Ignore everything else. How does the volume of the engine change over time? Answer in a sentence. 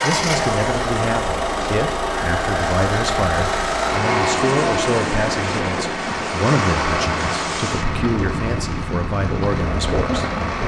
The loudness of the engine goes down.